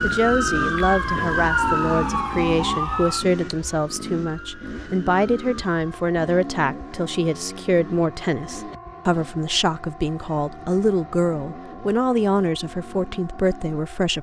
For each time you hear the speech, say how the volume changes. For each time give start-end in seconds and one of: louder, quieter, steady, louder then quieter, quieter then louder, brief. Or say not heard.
0.0-14.1 steady.